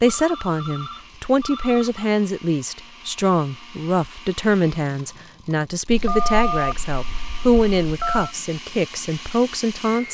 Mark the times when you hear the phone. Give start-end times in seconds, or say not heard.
0.1-2.1, 5.8-8.3.